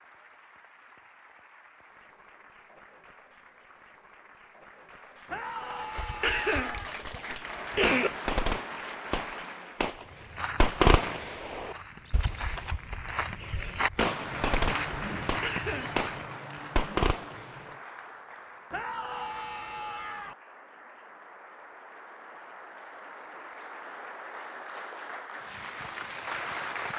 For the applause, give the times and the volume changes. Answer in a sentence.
The applause can be heard from 0.0 to 9.9 s, getting louder; and from 13.9 to 26.9 s, getting quieter then louder.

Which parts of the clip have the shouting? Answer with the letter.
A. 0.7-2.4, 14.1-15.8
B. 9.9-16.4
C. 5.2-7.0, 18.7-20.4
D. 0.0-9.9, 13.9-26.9
C.